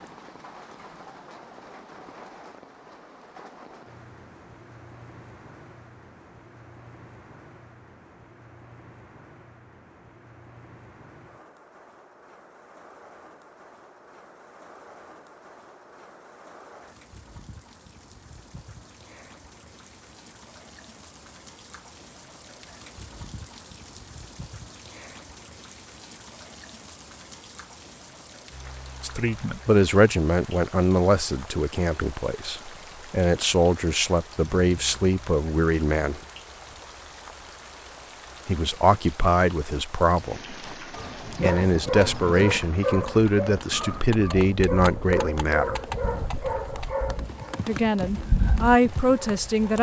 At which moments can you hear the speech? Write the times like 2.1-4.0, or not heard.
29.0-36.2, 38.5-40.8, 41.4-45.8, 47.6-49.7.